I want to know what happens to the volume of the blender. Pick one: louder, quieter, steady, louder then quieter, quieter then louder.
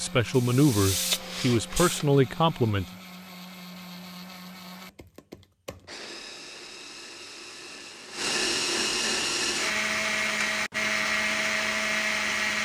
louder.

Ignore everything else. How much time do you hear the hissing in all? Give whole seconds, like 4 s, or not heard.
2 s.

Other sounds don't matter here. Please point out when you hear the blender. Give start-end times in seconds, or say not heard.
0.0-12.6.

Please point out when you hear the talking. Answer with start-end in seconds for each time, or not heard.
0.0-2.9.